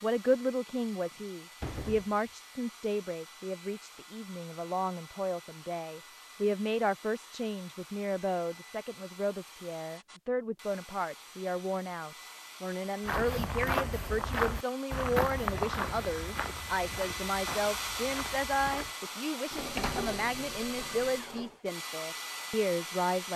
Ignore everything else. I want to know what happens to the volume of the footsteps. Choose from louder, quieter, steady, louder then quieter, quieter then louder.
quieter.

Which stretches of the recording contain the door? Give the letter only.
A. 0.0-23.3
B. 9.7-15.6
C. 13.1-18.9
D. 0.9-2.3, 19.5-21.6
D.